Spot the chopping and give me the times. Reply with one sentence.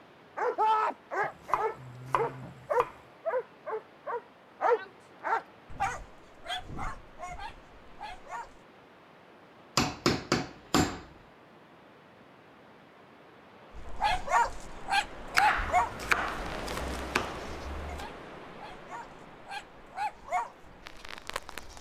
The chopping can be heard from 1.2 to 3.0 s, from 9.8 to 11.1 s and from 15.3 to 18.1 s.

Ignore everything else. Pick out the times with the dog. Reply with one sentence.
You can hear the dog from 0.3 to 8.6 s and from 13.8 to 21.7 s.